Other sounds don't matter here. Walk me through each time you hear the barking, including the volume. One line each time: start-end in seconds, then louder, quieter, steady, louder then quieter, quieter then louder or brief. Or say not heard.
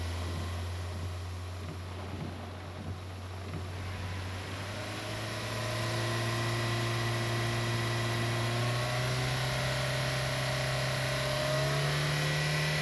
not heard.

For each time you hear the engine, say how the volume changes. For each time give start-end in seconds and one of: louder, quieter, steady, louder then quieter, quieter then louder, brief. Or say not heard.
0.0-12.7 louder.